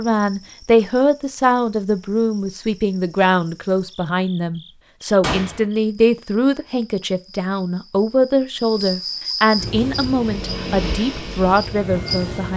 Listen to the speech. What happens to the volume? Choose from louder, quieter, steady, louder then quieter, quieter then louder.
steady.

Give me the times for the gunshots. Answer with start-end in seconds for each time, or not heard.
5.2-5.7.